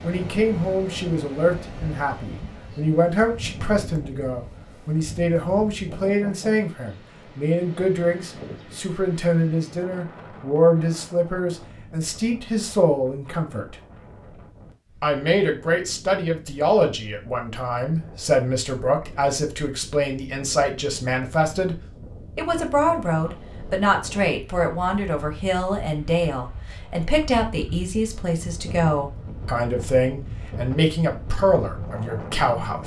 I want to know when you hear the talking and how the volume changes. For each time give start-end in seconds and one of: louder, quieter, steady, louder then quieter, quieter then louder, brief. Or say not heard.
0.0-13.8 steady
15.0-32.8 steady.